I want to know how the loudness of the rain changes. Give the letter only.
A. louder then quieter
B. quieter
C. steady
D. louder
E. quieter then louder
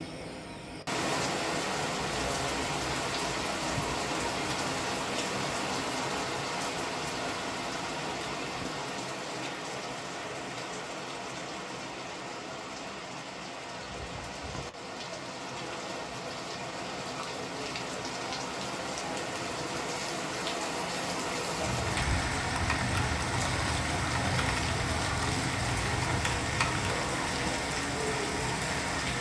E.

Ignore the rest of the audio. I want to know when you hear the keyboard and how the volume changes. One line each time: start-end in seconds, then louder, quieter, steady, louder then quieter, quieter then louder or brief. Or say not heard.
21.6-26.9 steady.